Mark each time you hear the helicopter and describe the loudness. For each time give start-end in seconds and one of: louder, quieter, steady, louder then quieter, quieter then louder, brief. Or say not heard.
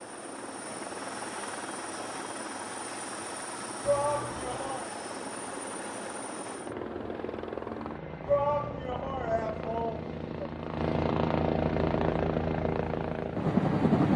0.0-14.1 louder.